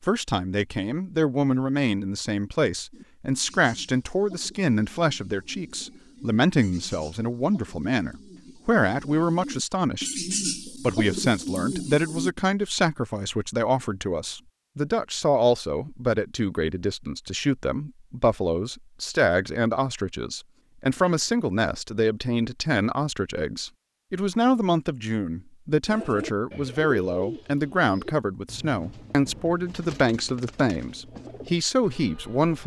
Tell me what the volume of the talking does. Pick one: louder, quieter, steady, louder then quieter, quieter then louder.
steady.